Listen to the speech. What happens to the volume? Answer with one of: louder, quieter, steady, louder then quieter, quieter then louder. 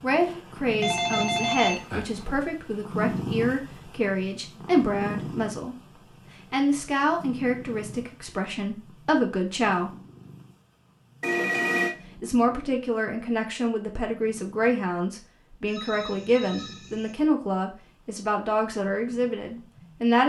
steady.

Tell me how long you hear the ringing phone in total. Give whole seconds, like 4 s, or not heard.
4 s.